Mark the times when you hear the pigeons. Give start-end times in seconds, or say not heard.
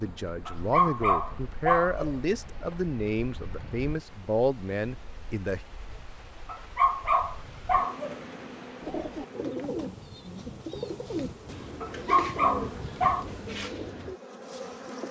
8.8-14.2.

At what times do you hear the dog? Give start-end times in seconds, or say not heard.
0.5-2.1, 6.5-8.2, 11.8-13.2.